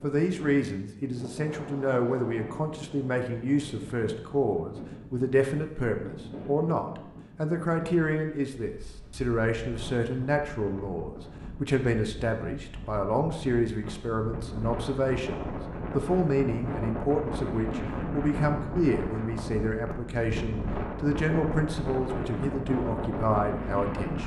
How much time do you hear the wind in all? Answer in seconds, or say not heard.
24 s.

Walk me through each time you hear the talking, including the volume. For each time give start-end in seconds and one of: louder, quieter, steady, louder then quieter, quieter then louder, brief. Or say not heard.
0.0-24.2 steady.